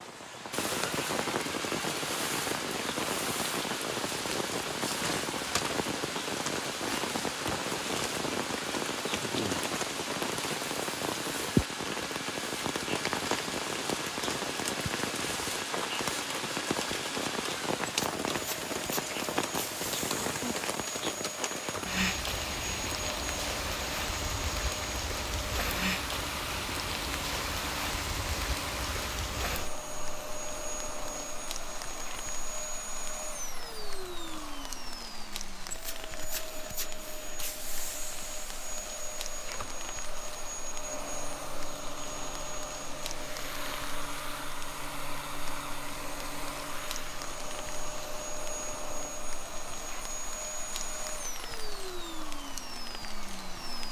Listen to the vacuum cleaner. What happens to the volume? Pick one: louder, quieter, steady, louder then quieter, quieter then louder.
steady.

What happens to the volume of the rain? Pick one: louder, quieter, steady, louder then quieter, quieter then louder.
quieter.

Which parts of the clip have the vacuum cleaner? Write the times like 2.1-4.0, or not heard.
0.0-53.8.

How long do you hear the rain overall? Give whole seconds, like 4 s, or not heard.
54 s.